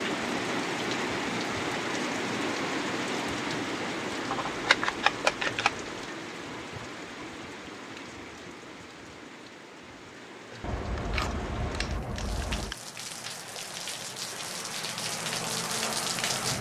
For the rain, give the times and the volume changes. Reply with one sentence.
You can hear the rain from 0.0 to 16.5 s, getting quieter then louder.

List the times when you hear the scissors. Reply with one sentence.
The scissors can be heard from 4.3 to 5.8 s and from 10.6 to 12.8 s.